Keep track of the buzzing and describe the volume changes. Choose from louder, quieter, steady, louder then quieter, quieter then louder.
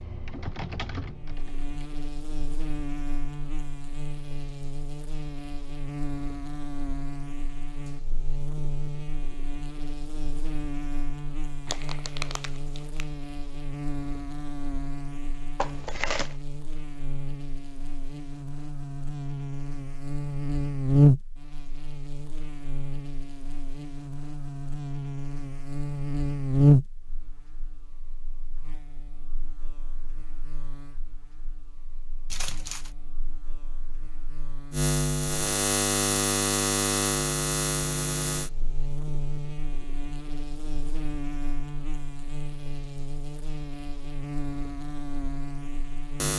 louder then quieter.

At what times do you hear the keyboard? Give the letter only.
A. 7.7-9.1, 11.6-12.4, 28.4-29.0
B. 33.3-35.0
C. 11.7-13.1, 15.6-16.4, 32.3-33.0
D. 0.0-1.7
D.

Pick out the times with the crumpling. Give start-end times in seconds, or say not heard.
11.7-13.1, 15.6-16.4, 32.3-33.0.